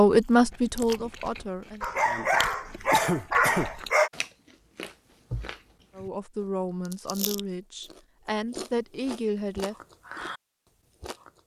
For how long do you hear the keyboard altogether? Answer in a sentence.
The keyboard can't be heard in this clip.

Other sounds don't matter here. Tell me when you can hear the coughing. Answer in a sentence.
The coughing can be heard from 2.9 to 3.7 s.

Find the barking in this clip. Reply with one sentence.
You can hear the barking from 1.8 to 4.1 s.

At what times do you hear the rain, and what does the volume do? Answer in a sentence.
The rain can't be heard in this clip.